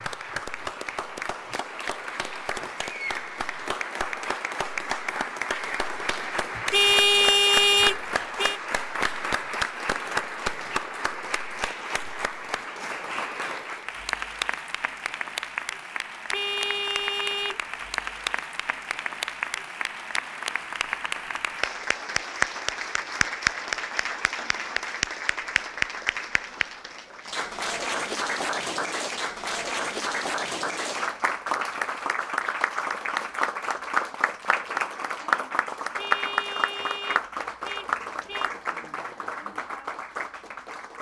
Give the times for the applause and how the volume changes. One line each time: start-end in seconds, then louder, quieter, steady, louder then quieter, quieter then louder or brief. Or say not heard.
0.0-40.9 steady.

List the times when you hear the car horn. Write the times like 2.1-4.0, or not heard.
6.7-8.6, 16.3-17.6, 36.0-38.5.